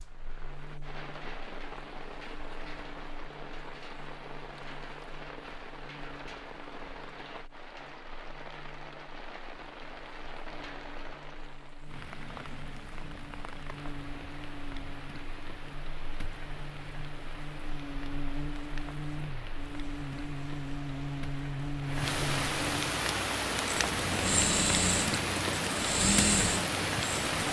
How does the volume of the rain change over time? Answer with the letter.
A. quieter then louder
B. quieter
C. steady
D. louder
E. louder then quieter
D.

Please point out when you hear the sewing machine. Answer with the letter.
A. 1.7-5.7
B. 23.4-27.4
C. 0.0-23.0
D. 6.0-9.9
B.